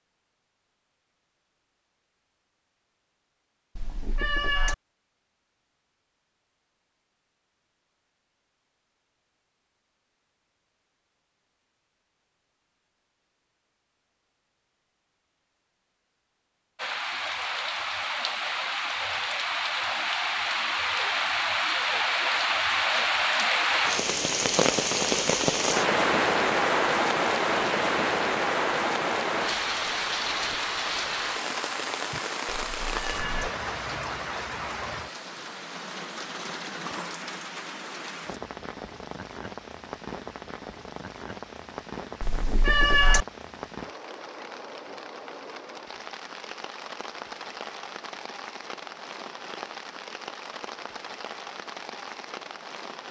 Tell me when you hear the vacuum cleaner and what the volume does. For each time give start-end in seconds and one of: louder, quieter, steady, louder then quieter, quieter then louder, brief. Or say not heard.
not heard.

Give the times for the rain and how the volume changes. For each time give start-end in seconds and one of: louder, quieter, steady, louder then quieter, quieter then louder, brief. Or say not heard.
16.8-53.0 quieter.